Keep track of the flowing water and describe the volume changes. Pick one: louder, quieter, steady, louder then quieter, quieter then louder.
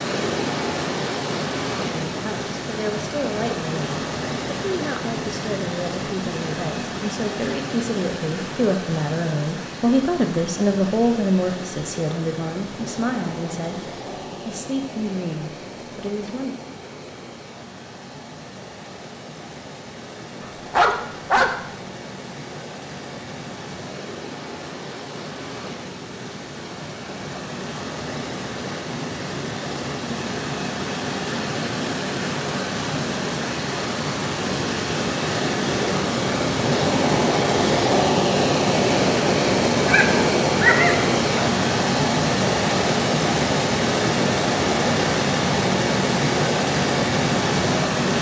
quieter then louder.